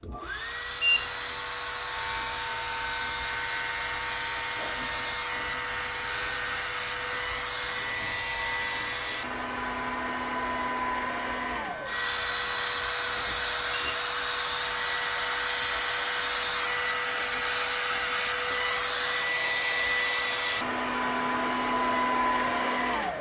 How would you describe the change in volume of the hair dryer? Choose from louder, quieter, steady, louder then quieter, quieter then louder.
louder.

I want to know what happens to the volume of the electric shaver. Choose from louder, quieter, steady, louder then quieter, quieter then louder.
quieter.